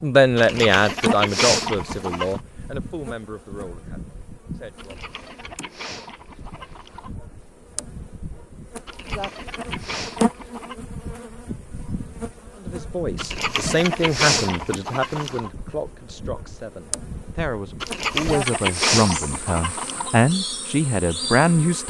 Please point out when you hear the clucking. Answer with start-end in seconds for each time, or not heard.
0.3-2.4, 4.8-7.1, 8.8-10.8, 13.2-15.5, 17.8-20.1.